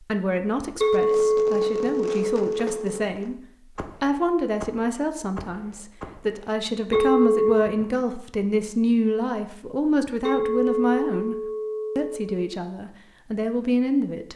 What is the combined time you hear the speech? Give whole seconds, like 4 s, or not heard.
13 s.